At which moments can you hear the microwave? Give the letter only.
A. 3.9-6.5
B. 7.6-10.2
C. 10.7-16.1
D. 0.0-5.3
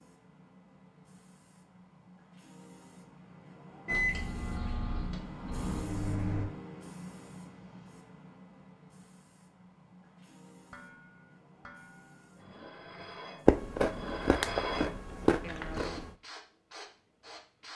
A.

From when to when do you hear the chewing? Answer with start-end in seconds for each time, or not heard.
13.4-16.1.